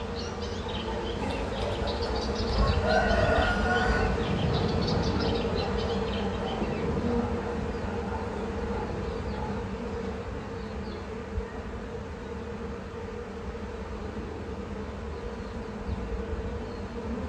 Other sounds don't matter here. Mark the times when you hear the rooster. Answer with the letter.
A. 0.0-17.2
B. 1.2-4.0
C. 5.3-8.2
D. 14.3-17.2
B.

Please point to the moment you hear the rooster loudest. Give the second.
3 s.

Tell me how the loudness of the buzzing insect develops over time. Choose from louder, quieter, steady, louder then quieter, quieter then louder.
quieter.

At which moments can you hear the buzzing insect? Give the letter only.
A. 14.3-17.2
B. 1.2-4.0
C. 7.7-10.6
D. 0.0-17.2
D.